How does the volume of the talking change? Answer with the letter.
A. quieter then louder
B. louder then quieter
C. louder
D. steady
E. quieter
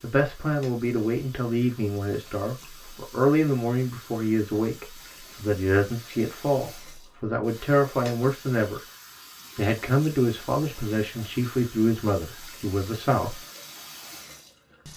D.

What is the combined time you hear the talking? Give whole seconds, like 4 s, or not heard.
13 s.